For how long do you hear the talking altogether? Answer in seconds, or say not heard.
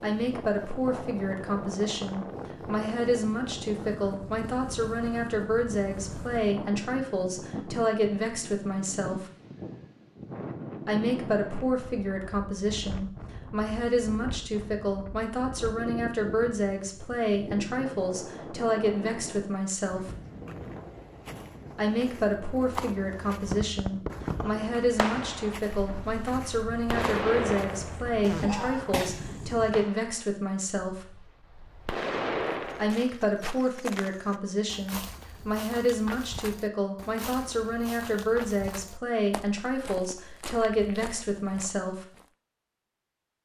37 s.